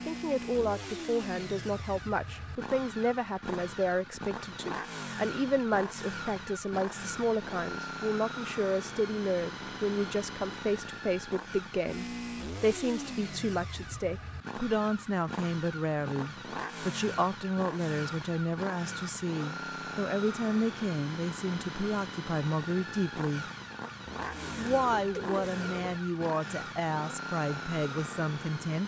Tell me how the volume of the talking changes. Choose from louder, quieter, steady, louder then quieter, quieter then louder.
steady.